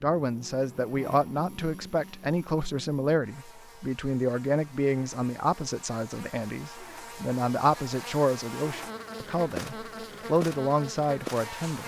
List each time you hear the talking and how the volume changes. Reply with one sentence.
The talking can be heard from 0.0 to 11.8 s, at a steady volume.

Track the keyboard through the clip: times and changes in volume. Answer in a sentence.
The keyboard can't be heard in this clip.